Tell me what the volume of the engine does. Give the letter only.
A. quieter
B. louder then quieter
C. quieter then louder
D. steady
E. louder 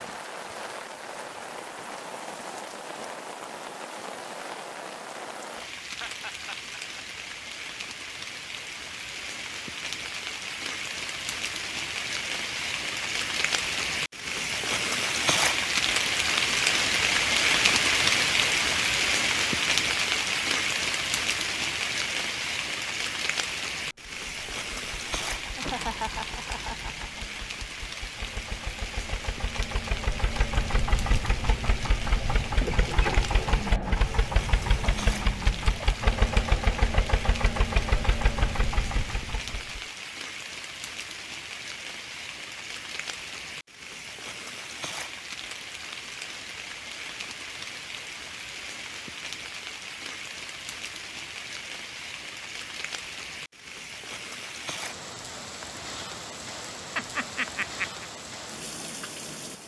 E.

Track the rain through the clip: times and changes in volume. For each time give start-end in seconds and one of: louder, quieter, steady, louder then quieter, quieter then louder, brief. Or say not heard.
0.0-59.6 louder then quieter.